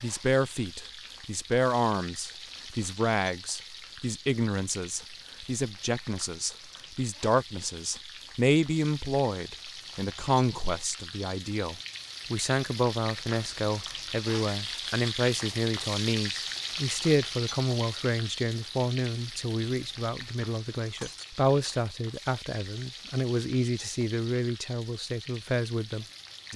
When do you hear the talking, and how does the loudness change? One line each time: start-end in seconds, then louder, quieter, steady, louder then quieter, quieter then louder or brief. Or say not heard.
0.0-26.5 steady.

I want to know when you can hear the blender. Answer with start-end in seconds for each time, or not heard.
not heard.